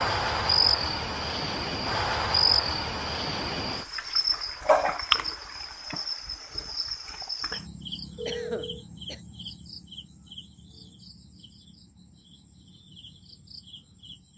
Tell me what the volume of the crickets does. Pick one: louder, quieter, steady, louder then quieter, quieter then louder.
quieter.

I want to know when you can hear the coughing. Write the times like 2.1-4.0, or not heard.
8.2-9.2.